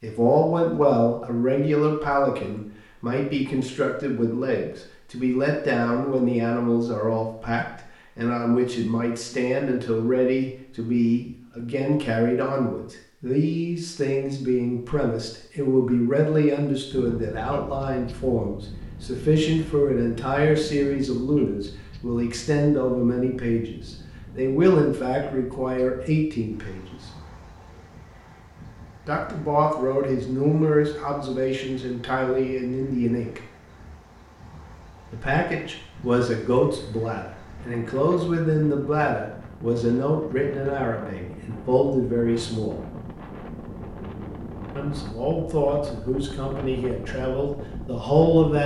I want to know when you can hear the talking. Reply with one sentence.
You can hear the talking from 0.0 to 26.9 s, from 29.1 to 33.4 s, from 35.1 to 42.8 s and from 44.8 to 48.6 s.